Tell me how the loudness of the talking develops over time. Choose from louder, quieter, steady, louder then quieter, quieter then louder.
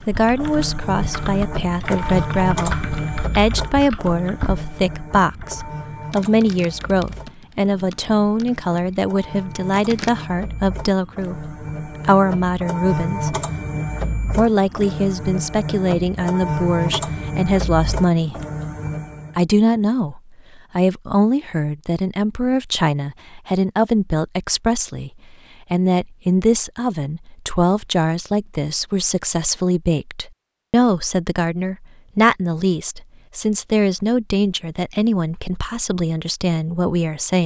steady.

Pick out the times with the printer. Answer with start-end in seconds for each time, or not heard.
0.0-19.4.